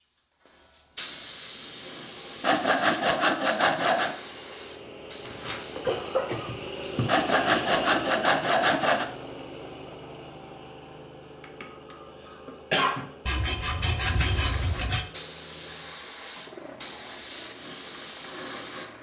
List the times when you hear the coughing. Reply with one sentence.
The coughing can be heard from 5.2 to 7.2 s and from 11.4 to 13.1 s.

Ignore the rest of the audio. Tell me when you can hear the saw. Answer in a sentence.
You can hear the saw from 2.4 to 4.2 s, from 7.0 to 9.1 s and from 13.2 to 15.1 s.